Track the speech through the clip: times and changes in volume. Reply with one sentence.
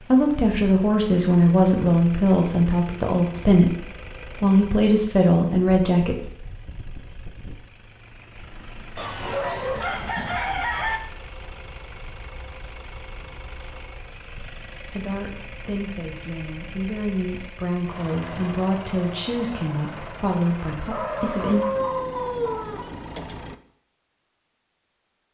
You can hear the speech from 0.0 to 6.2 s, at a steady volume; and from 14.8 to 21.6 s, getting louder.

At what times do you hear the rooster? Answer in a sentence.
The rooster can be heard from 8.9 to 11.0 s and from 20.9 to 22.9 s.